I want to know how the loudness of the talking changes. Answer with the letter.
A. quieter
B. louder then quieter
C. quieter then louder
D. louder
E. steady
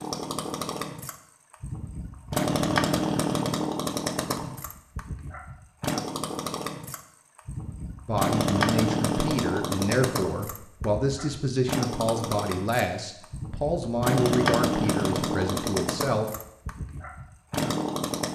E.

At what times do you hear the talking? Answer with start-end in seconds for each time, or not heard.
8.1-16.2.